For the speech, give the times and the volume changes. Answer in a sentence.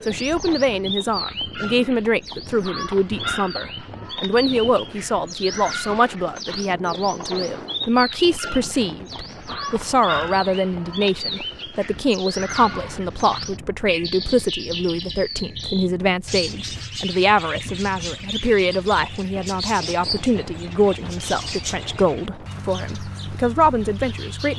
You can hear the speech from 0.1 to 24.5 s, at a steady volume.